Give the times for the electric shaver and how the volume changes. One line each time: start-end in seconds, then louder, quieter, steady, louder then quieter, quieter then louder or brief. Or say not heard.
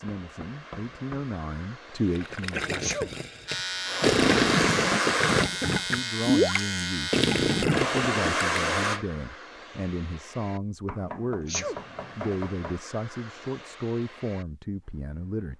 3.5-7.7 steady.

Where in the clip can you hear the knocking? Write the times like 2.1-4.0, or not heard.
0.1-1.4, 10.8-12.8.